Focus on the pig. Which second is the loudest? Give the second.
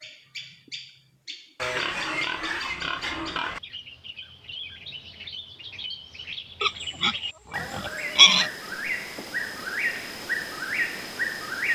8 s.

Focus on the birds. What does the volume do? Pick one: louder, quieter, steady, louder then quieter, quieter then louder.
louder.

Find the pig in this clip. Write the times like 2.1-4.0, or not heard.
1.6-3.6, 6.6-8.5.